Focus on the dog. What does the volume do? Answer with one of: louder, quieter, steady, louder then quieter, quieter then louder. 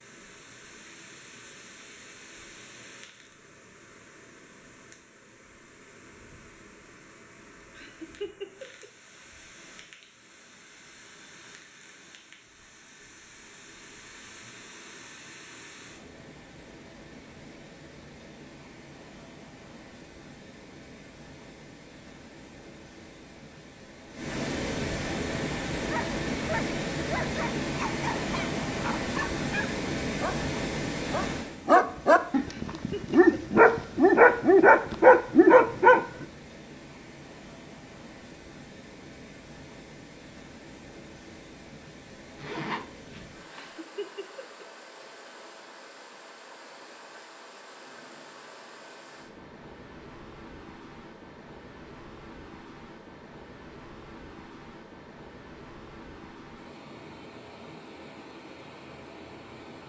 louder.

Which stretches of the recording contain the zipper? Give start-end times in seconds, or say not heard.
42.4-43.8.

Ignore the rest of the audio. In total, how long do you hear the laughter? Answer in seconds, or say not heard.
3 s.